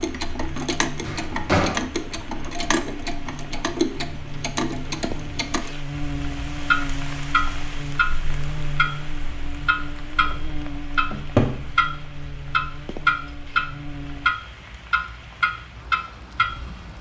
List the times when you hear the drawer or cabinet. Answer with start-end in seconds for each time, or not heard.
1.1-1.9, 11.1-11.6.